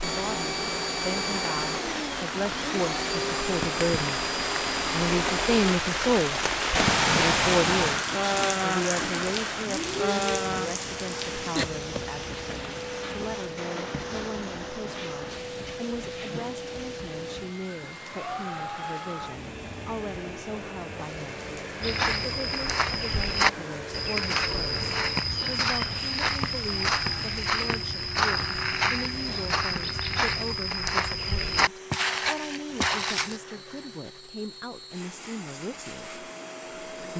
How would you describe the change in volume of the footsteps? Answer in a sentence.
The volume of the footsteps stays about the same.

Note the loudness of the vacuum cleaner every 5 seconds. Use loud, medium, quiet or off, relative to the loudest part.
loud, loud, medium, medium, medium, quiet, quiet, medium.